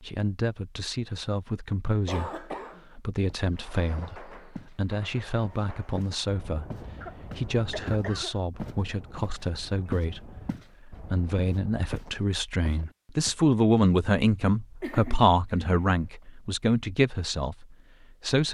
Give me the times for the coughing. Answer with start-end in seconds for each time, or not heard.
2.0-2.9, 7.0-8.4, 14.8-16.0.